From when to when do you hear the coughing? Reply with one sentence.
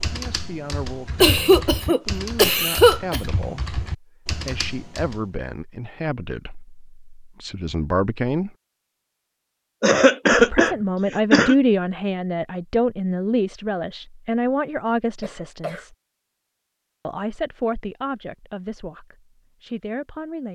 The coughing can be heard from 1.2 to 3.2 s, from 9.8 to 11.6 s and from 15.2 to 15.8 s.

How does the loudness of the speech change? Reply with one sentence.
The volume of the speech goes up, then down.